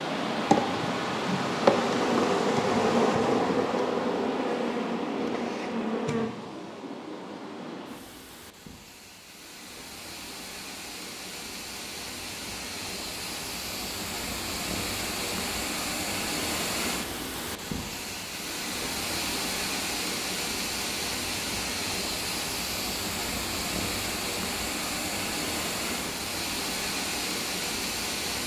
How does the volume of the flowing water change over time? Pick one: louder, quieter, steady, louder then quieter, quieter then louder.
quieter then louder.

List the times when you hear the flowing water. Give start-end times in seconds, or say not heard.
0.0-28.4.